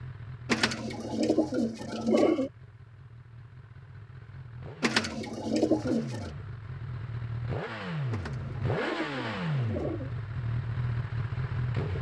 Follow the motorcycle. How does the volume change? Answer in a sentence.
The volume of the motorcycle goes up.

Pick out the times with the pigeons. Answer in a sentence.
You can hear the pigeons from 0.5 to 2.5 s, from 4.8 to 6.3 s and from 8.1 to 10.1 s.